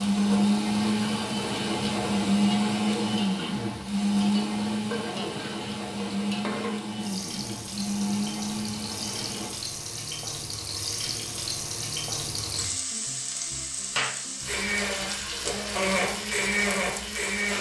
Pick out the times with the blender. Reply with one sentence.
You can hear the blender from 0.0 to 9.5 s and from 14.4 to 17.5 s.